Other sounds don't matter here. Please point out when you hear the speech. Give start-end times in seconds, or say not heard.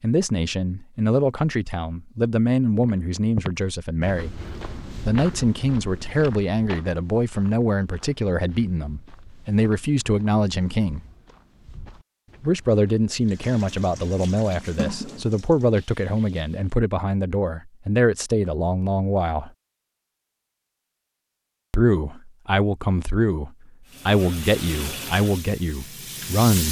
0.0-4.3, 5.0-11.0, 12.4-19.5, 21.7-26.6.